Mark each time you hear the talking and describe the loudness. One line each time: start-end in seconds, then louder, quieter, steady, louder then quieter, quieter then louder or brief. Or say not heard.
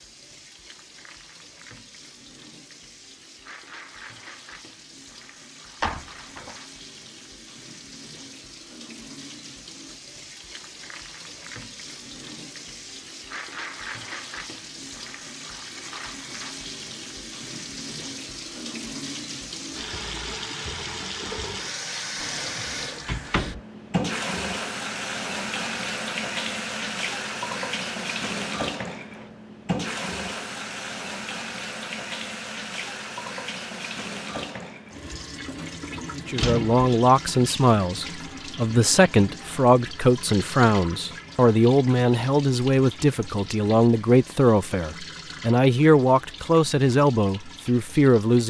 36.1-48.4 steady.